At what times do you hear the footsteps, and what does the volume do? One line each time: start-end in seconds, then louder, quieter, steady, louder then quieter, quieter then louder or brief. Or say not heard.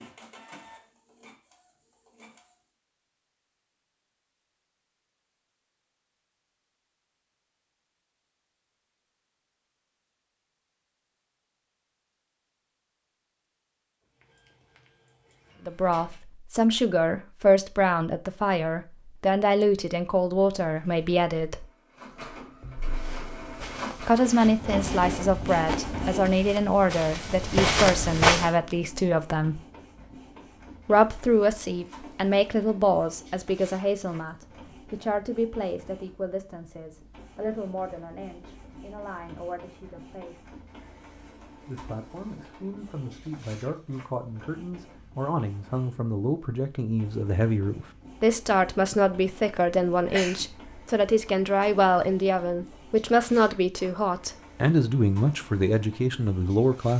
22.9-28.6 louder.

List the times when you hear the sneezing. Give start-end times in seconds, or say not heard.
50.0-50.6.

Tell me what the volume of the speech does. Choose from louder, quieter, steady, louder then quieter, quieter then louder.
quieter then louder.